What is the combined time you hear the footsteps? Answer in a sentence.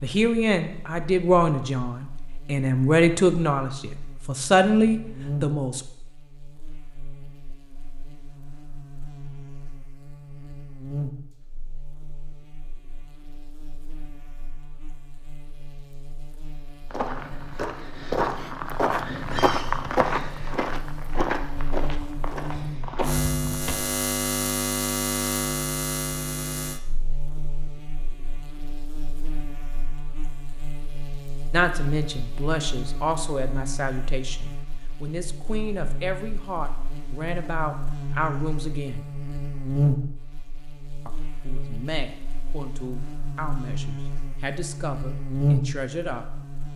The footsteps can be heard for 7 seconds in total.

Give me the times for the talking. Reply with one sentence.
You can hear the talking from 0.0 to 5.8 s, from 31.5 to 39.0 s and from 41.0 to 46.7 s.